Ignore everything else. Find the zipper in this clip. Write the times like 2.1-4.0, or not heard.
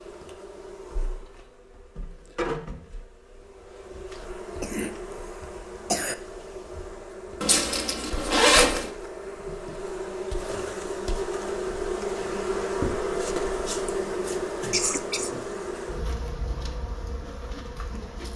7.4-8.9.